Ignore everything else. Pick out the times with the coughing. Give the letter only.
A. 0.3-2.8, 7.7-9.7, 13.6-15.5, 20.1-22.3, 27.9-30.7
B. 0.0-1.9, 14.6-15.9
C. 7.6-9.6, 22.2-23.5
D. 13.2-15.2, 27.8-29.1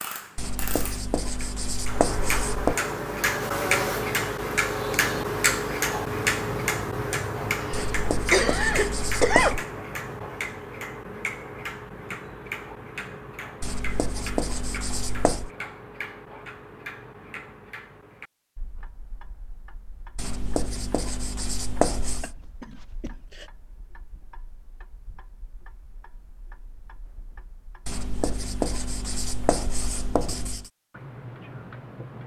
C.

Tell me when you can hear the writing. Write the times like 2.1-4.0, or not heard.
0.3-2.8, 7.7-9.7, 13.6-15.5, 20.1-22.3, 27.9-30.7.